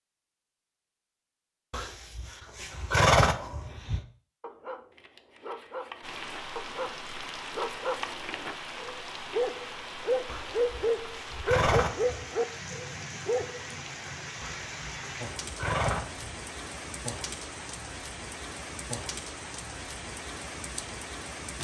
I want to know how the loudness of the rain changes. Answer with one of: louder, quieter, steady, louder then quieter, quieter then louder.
steady.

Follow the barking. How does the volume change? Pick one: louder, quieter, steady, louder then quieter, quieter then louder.
louder.